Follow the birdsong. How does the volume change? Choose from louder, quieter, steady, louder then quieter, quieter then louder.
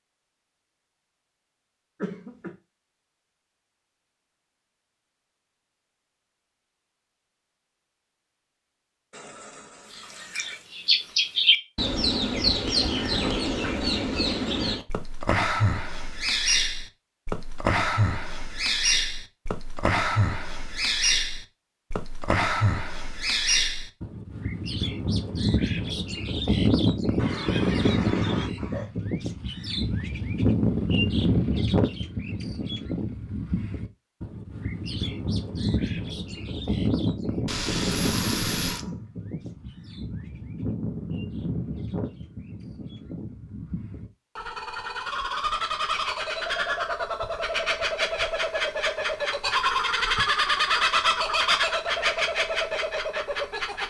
quieter then louder.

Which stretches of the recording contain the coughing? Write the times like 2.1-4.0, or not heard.
2.0-2.5, 27.1-28.9, 38.0-39.1.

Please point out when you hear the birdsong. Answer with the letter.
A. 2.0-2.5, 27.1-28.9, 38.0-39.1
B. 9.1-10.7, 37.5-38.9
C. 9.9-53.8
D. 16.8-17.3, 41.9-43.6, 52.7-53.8
C.